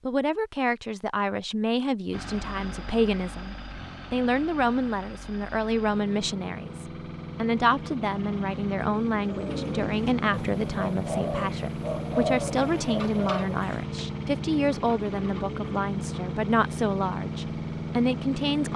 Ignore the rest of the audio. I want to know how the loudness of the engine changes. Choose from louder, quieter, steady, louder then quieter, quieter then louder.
louder.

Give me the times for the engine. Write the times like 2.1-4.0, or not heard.
2.1-18.7.